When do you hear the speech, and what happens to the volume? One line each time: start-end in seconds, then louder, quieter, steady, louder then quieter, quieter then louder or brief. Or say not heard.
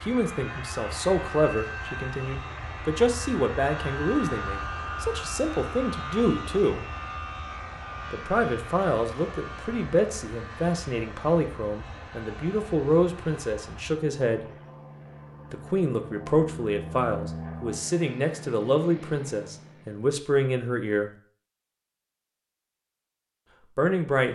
0.0-6.8 quieter then louder
8.1-14.5 steady
15.5-21.1 steady
23.8-24.3 brief.